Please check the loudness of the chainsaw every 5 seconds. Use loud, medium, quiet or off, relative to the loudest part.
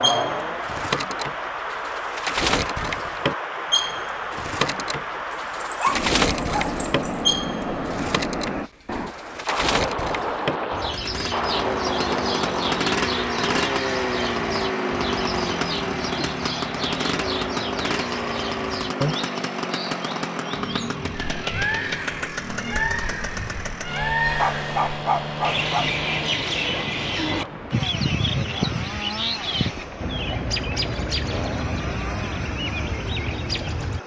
off, off, loud, loud, medium, medium, medium.